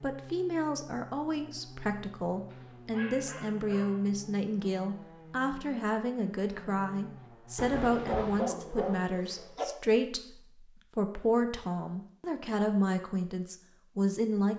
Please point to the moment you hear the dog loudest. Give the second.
8 s.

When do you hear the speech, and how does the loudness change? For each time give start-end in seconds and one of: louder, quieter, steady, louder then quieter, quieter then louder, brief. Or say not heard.
0.0-14.5 steady.